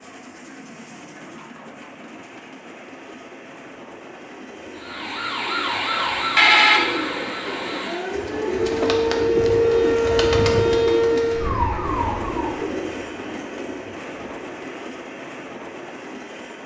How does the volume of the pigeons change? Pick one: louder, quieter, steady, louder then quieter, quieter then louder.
louder then quieter.